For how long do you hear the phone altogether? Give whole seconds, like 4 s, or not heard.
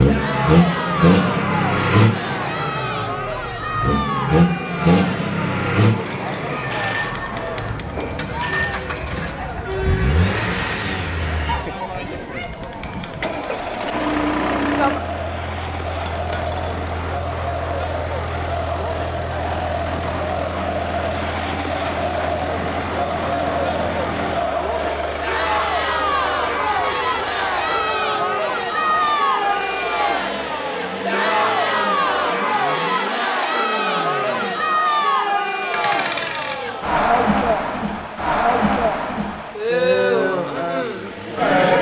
2 s.